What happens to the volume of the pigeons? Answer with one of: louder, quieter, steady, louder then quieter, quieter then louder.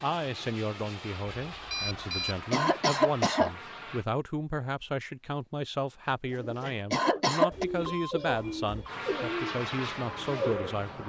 louder then quieter.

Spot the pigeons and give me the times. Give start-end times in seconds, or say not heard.
6.2-10.8.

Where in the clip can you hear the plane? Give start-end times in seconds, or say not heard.
0.0-4.0, 8.8-11.0.